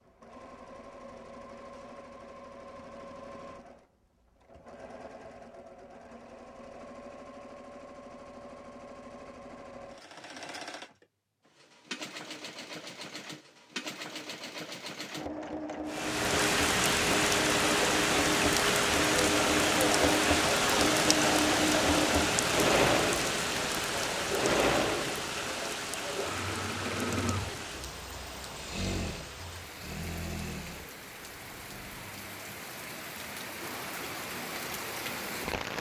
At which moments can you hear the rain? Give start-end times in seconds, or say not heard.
15.8-35.7.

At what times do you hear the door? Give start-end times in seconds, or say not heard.
not heard.